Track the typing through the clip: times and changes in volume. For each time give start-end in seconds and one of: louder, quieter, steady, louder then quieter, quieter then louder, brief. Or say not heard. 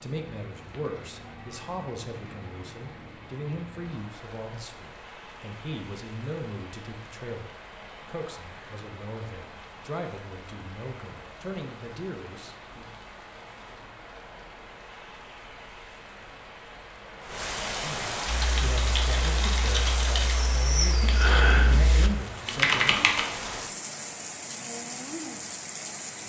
18.2-23.2 louder.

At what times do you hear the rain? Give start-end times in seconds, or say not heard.
0.0-26.2.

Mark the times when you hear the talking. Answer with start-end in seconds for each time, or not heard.
0.0-12.8, 17.8-22.9.